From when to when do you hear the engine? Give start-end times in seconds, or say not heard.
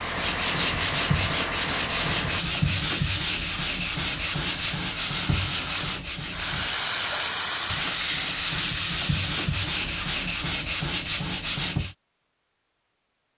0.0-2.5.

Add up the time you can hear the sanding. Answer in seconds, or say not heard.
12 s.